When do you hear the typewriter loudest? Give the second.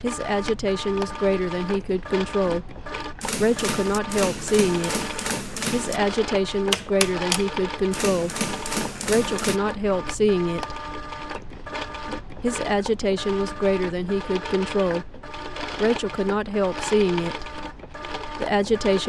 7 s.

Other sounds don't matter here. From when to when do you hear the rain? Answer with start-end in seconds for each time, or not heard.
not heard.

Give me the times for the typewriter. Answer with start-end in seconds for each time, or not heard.
3.2-9.6.